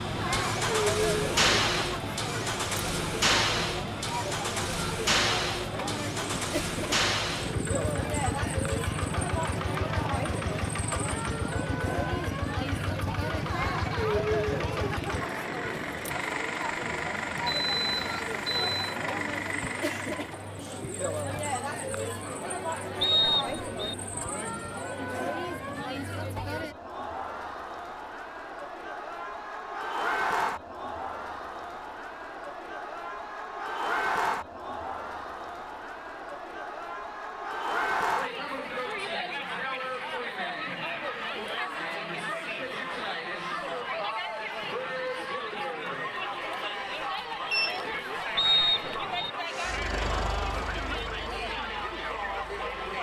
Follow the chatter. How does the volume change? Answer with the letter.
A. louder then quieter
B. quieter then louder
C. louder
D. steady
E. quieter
D.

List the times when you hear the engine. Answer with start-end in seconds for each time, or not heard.
0.0-20.4, 49.5-52.9.